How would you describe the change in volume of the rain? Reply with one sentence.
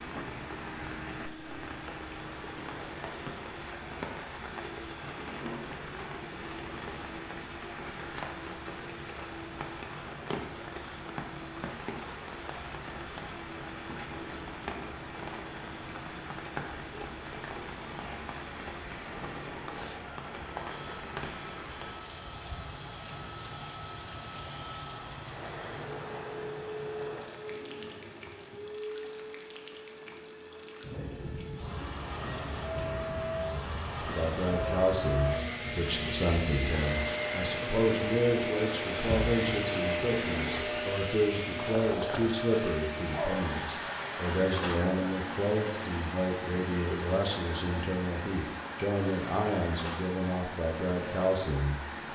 The loudness of the rain stays about the same.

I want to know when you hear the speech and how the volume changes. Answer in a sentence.
You can hear the speech from 34.0 to 51.8 s, at a steady volume.